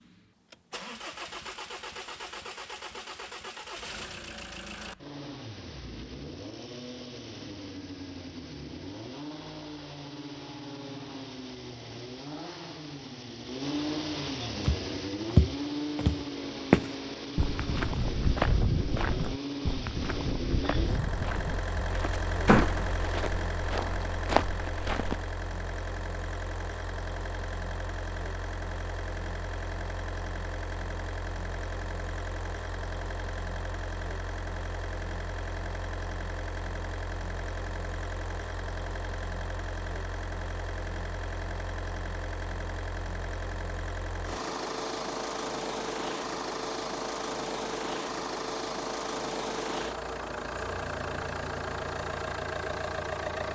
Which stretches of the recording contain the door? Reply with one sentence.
The door can be heard from 22.4 to 22.9 s.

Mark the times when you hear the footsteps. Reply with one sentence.
You can hear the footsteps from 14.6 to 25.4 s.